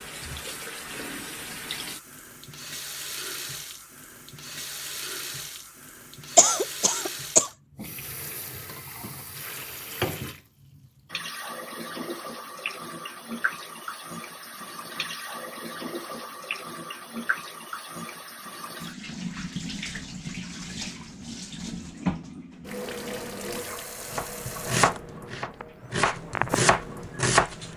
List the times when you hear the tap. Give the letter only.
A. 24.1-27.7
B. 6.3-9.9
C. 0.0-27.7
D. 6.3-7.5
C.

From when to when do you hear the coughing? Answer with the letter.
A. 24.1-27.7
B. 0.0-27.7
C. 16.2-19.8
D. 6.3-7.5
D.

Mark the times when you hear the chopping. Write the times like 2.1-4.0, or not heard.
24.1-27.7.